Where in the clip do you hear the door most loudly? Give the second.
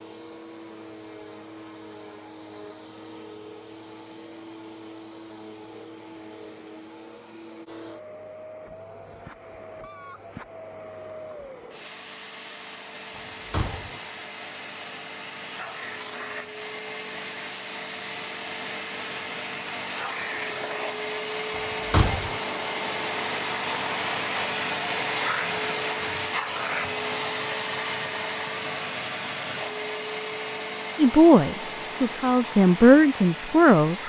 22 s.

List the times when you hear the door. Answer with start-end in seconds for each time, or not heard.
13.2-14.0, 21.6-22.4.